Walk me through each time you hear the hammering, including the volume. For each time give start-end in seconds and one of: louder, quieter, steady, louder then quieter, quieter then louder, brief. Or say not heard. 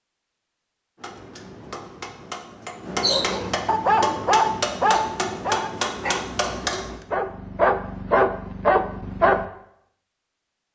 0.9-7.0 louder.